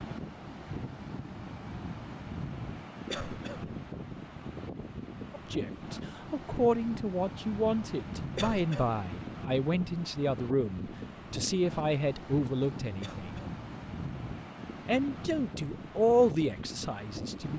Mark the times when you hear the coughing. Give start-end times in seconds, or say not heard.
3.1-3.8, 8.3-9.0, 13.0-13.6.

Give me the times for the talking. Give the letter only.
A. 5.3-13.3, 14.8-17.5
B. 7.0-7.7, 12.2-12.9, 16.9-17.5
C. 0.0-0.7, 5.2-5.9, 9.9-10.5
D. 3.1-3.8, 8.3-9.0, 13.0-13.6
A.